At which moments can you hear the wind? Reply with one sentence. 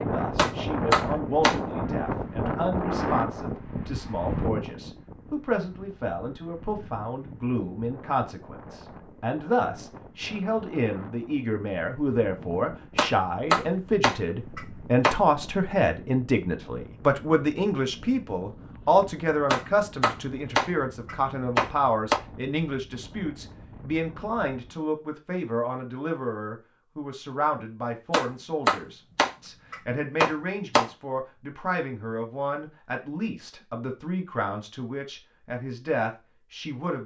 You can hear the wind from 0.0 to 24.8 s.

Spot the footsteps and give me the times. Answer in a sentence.
The footsteps can't be heard in this clip.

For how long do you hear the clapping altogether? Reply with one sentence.
The clapping can be heard for 9 seconds in total.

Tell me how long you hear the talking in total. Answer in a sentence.
You can hear the talking for 37 seconds altogether.